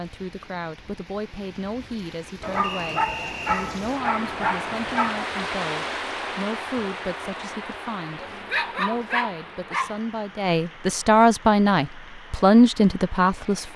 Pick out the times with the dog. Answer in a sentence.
You can hear the dog from 2.4 to 5.2 s and from 8.2 to 10.0 s.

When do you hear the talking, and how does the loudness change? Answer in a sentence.
You can hear the talking from 0.0 to 13.7 s, getting louder.